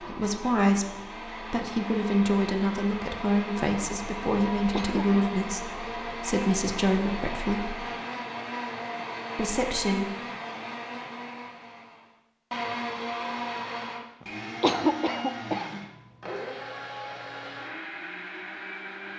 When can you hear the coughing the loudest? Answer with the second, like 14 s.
15 s.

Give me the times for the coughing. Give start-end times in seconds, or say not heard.
4.7-5.2, 14.6-15.8.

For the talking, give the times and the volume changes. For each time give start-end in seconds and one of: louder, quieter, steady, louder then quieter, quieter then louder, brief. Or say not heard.
0.0-7.8 steady
9.3-10.2 brief.